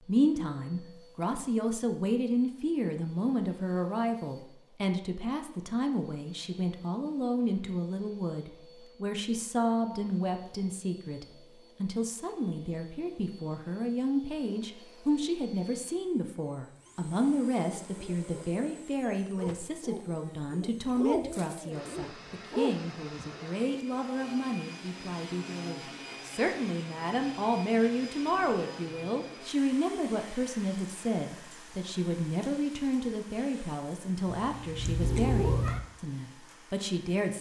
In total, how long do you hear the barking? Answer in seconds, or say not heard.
6 s.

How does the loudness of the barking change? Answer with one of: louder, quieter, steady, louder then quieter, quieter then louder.
louder.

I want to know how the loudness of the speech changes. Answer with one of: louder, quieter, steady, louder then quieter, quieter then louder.
steady.